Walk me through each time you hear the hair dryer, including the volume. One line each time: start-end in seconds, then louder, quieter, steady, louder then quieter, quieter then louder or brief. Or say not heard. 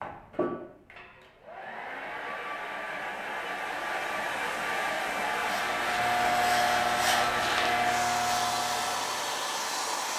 0.0-10.1 louder.